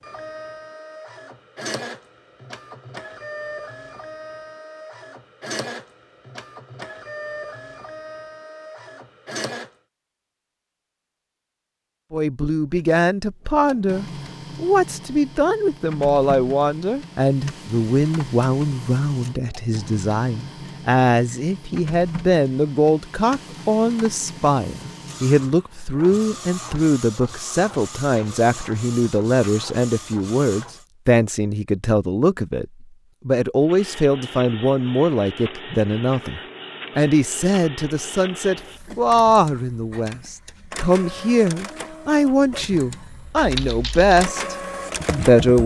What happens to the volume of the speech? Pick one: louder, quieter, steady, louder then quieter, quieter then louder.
steady.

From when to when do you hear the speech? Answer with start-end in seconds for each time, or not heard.
12.1-45.6.